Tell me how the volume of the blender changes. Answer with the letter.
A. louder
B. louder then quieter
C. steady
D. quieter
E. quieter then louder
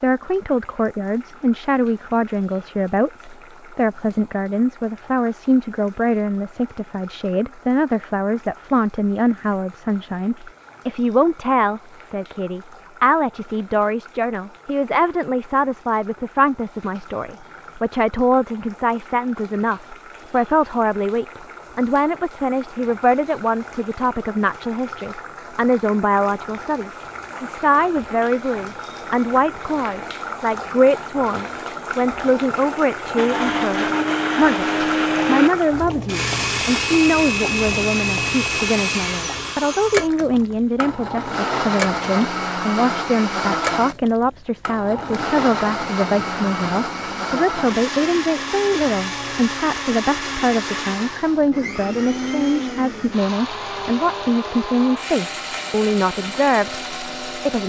D.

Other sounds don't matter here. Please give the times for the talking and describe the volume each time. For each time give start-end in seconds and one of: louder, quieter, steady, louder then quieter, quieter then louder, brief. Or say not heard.
0.0-57.6 steady.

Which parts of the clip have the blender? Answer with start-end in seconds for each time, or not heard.
33.1-57.6.